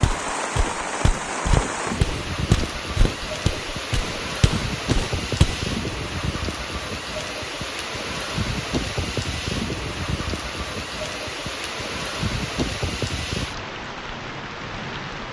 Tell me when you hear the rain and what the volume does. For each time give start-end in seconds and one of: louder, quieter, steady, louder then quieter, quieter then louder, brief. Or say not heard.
0.0-15.2 steady.